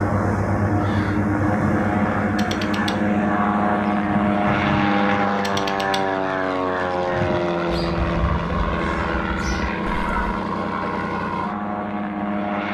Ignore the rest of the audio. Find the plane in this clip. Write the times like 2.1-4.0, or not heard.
0.0-12.7.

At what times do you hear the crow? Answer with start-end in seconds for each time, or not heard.
0.8-10.4.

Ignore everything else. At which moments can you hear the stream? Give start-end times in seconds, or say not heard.
not heard.